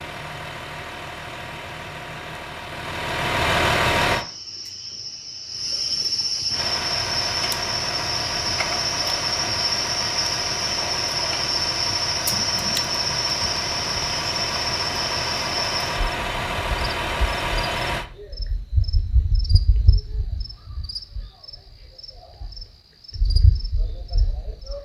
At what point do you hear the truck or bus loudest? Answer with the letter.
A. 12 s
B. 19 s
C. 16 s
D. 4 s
D.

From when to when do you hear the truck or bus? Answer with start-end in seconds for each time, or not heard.
0.0-4.2, 6.5-18.1.